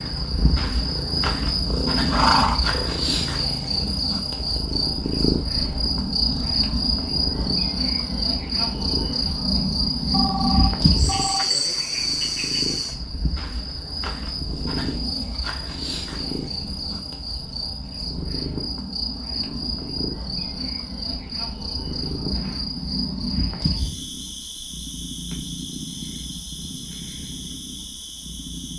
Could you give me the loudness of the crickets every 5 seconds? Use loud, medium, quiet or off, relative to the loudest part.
loud, loud, loud, medium, medium, quiet.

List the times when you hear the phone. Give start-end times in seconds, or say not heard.
10.1-11.4.